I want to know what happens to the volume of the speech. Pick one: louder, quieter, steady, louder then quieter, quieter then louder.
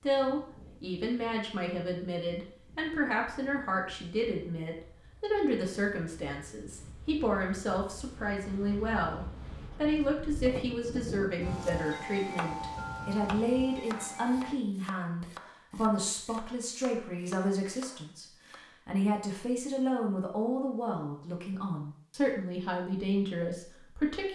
steady.